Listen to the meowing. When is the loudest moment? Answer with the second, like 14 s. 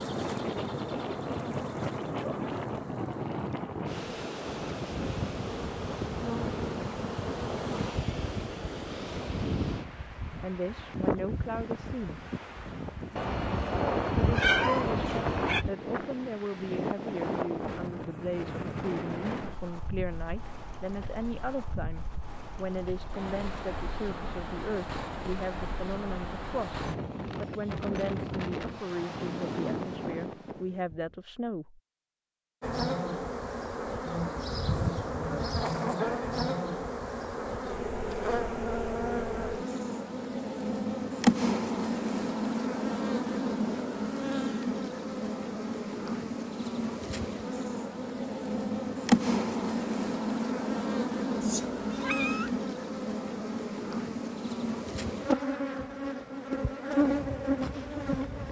15 s.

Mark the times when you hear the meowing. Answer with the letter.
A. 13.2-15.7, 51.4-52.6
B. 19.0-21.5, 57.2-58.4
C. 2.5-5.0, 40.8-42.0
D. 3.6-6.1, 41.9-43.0
A.